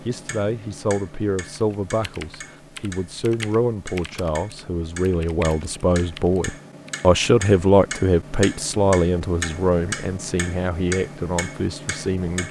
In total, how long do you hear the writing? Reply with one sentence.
The writing can't be heard in this clip.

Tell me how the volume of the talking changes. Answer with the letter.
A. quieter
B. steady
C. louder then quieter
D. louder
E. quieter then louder
C.